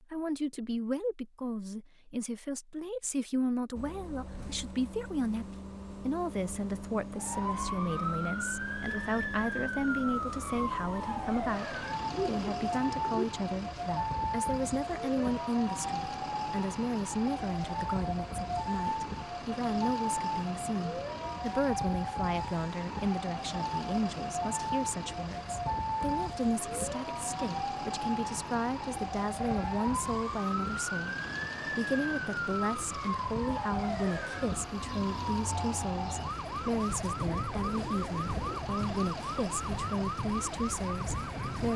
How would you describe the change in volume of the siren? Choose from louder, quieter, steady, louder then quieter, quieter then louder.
steady.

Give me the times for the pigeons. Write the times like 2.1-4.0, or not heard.
12.1-13.2, 37.0-38.6.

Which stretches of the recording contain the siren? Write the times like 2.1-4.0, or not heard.
7.2-41.7.